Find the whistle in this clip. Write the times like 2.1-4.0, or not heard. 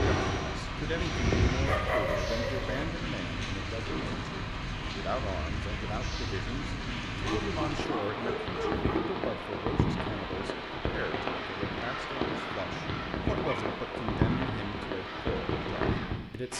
not heard.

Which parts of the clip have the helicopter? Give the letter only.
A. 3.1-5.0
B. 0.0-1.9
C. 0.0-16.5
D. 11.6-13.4
B.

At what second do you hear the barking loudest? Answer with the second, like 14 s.
2 s.